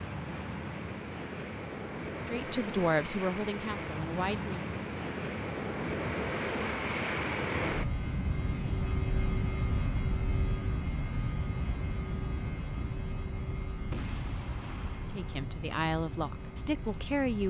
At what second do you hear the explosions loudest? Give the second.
14 s.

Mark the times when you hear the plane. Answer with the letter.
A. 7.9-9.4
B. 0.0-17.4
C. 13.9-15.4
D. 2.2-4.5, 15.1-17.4
B.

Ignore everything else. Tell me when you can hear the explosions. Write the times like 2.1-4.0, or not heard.
13.9-15.4.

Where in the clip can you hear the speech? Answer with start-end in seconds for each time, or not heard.
2.2-4.5, 15.1-17.4.